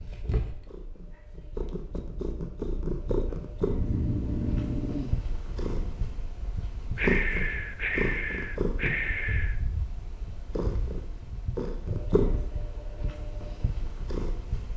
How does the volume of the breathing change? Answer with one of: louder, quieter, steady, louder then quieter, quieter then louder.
quieter then louder.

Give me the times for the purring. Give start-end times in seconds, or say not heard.
0.0-14.7.